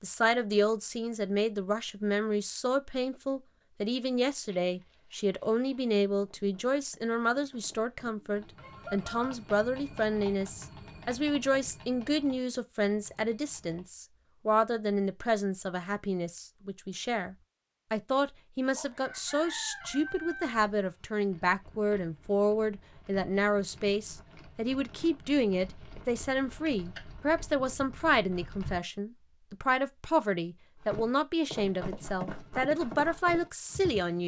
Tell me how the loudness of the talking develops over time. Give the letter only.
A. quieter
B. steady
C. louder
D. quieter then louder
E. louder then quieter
B.